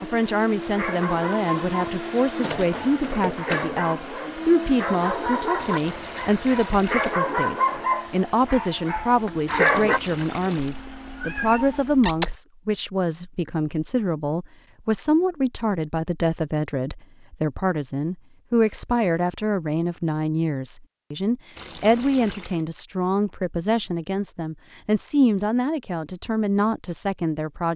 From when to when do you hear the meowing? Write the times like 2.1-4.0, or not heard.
10.7-12.3.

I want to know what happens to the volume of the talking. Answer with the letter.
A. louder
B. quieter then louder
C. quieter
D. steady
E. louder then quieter
D.